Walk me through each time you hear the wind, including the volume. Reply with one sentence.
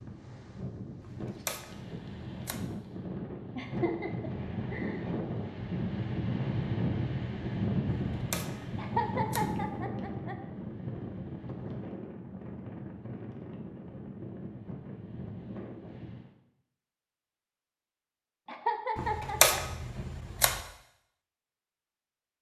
The wind can be heard from 0.0 to 16.3 s, getting louder then quieter.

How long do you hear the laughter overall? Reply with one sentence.
You can hear the laughter for 4 seconds altogether.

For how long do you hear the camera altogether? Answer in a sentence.
The camera can be heard for 5 seconds in total.